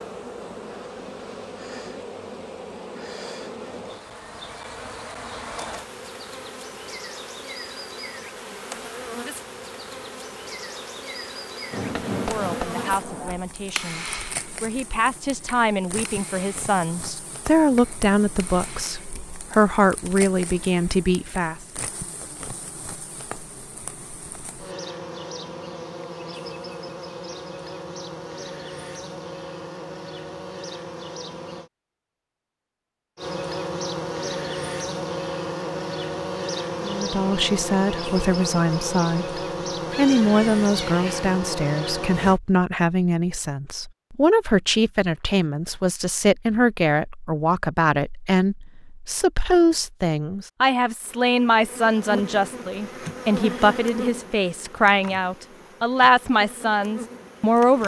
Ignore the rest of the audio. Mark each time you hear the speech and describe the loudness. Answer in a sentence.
You can hear the speech from 12.2 to 21.6 s, getting louder; and from 36.8 to 57.8 s, at a steady volume.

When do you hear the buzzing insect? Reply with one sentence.
The buzzing insect can be heard from 0.0 to 31.7 s, from 33.1 to 42.4 s and from 51.0 to 57.8 s.